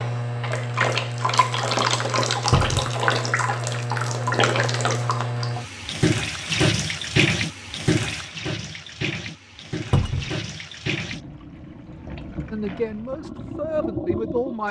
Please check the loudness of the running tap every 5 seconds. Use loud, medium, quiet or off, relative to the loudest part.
loud, loud, medium.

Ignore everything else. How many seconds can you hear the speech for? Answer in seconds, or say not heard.
2 s.